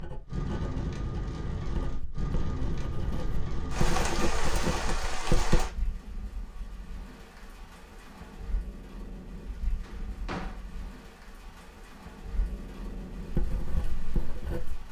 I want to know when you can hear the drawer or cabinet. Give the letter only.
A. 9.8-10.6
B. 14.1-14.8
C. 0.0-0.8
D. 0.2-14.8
A.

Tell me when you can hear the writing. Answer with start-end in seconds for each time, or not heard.
0.0-5.7, 13.3-14.8.